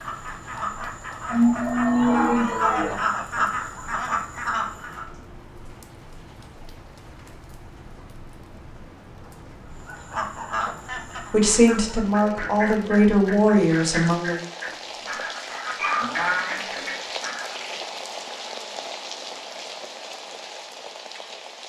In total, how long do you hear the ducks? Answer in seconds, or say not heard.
13 s.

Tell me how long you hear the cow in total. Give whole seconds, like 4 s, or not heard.
3 s.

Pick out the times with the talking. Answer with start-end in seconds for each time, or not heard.
11.3-14.4.